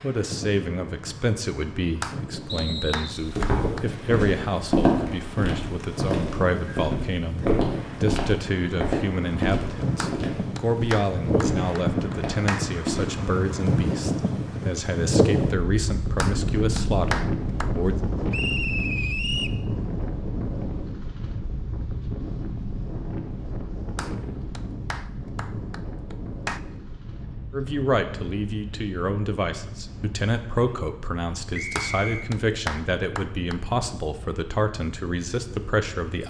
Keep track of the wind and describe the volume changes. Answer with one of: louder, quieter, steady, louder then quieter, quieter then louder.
louder then quieter.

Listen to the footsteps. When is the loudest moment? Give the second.
5 s.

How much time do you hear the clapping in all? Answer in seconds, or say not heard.
11 s.